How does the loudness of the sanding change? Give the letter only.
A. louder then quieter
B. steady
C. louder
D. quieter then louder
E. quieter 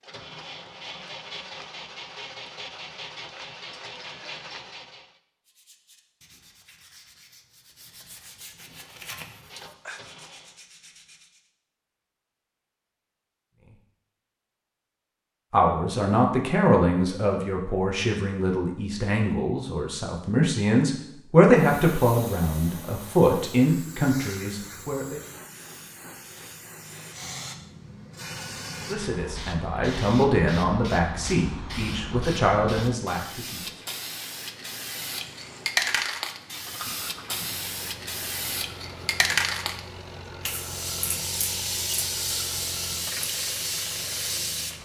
A.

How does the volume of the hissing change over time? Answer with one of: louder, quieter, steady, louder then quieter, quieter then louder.
louder.